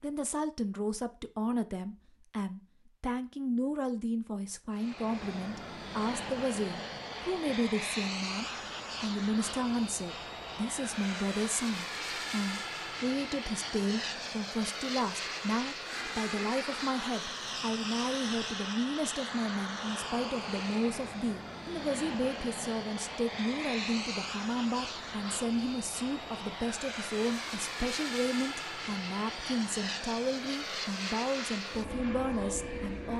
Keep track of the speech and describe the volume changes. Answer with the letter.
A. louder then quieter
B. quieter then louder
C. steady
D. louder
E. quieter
C.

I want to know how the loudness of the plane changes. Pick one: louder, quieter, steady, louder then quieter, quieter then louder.
steady.